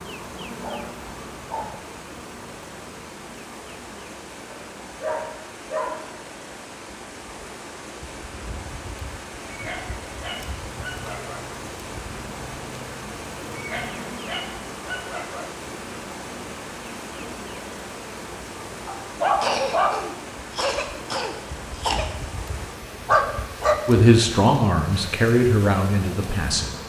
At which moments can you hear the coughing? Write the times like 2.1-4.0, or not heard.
19.4-22.1.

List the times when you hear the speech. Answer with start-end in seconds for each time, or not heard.
23.9-26.7.